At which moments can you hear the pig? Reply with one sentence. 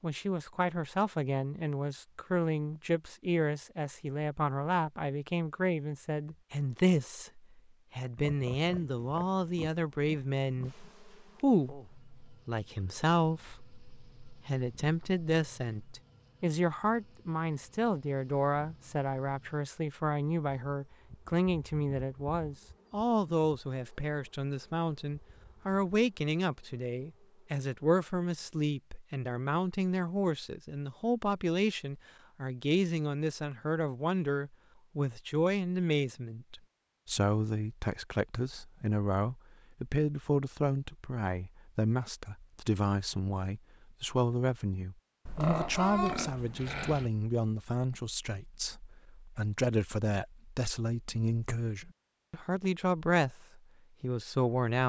You can hear the pig from 8.2 to 10.9 s and from 45.2 to 47.1 s.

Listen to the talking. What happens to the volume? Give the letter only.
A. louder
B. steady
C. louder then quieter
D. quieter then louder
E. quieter
B.